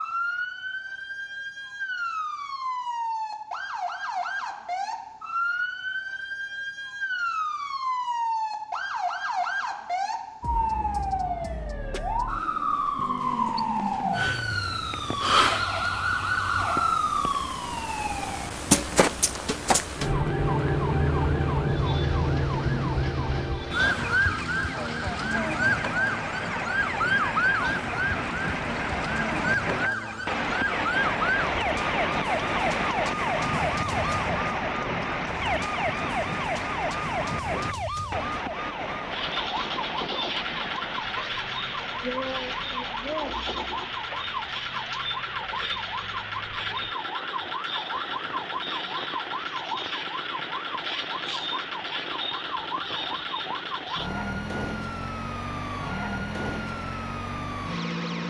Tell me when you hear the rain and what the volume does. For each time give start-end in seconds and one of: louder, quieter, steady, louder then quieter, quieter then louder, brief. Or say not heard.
13.2-58.2 louder then quieter.